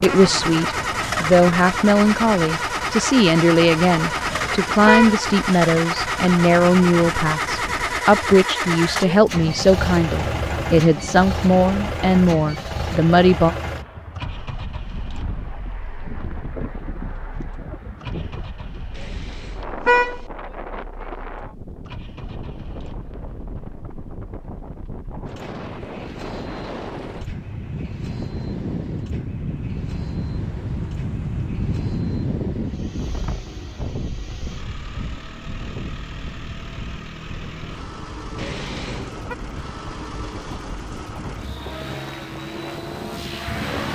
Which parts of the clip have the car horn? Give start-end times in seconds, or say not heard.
4.0-5.2, 18.9-20.2, 38.4-39.4.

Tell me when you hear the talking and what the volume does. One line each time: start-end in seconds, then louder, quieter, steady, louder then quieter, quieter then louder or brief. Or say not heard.
0.0-13.6 steady.